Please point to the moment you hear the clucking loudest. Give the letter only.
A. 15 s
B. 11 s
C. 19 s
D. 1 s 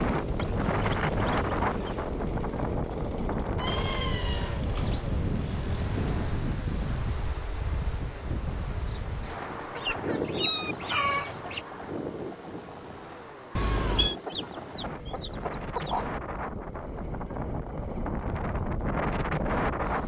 B.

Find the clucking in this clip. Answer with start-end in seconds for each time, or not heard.
0.3-2.1, 9.8-11.7, 14.2-16.1.